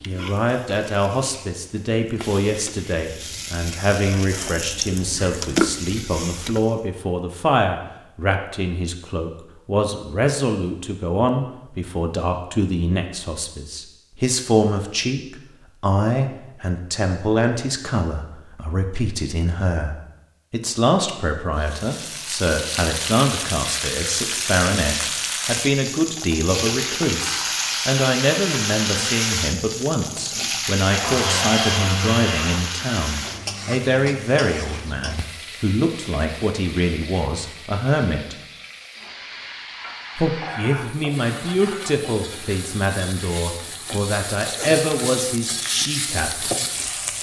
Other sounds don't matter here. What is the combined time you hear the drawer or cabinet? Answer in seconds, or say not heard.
2 s.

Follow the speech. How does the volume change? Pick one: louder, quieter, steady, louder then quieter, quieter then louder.
steady.